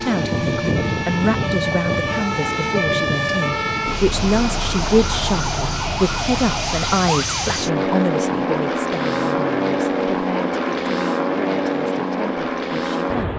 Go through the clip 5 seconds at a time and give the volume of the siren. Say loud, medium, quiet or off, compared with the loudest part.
loud, loud, off.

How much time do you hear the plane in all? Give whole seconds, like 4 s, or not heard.
13 s.